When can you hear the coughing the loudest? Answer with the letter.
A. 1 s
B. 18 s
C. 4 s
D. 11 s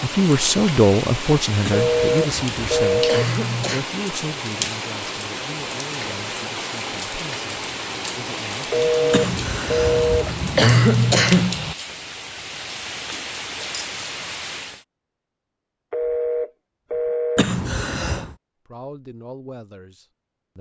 D.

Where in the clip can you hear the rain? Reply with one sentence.
You can hear the rain from 0.0 to 14.8 s.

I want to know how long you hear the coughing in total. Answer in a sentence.
The coughing can be heard for 6 seconds in total.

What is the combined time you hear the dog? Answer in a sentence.
The dog can't be heard in this clip.